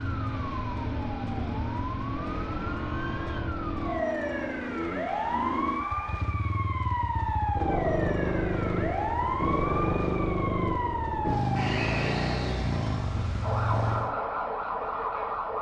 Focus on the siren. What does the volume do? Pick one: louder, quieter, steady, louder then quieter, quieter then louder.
steady.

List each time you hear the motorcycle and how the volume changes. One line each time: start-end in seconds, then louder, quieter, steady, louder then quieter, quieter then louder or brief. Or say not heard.
0.0-14.2 louder.